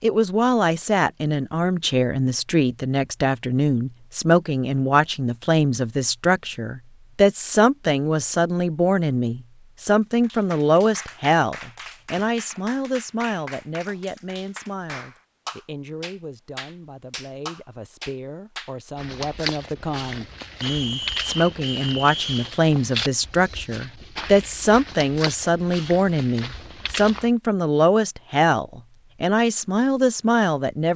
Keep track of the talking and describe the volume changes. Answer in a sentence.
The loudness of the talking goes down, then up.